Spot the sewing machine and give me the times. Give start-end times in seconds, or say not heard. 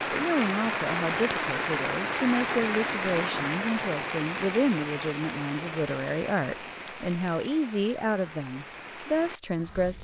not heard.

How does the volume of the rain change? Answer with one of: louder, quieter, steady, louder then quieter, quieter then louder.
quieter.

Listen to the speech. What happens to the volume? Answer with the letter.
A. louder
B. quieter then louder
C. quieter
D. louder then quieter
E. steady
E.